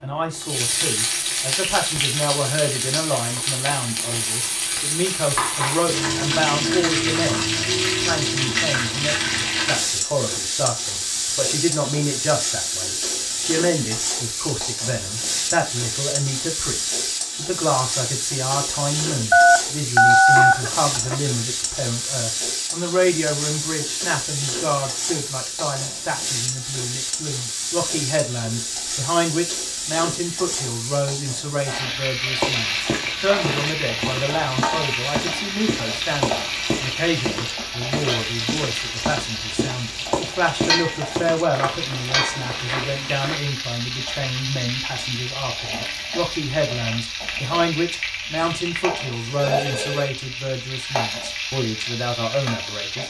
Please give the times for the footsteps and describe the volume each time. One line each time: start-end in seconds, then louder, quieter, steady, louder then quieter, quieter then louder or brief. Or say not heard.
32.4-43.4 steady.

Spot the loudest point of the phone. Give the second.
20 s.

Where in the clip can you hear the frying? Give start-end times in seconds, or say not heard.
0.3-53.0.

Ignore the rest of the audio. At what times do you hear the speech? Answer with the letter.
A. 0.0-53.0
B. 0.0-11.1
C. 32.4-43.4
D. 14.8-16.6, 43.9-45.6
A.